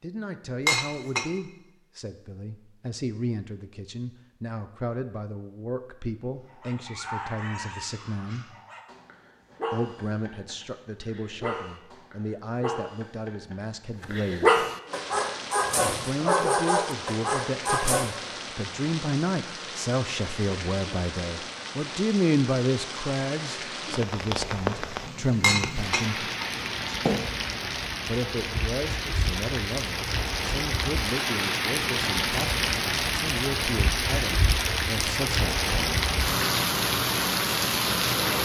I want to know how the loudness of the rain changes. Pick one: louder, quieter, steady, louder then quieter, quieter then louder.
louder.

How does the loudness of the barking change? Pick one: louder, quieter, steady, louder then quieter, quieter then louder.
louder.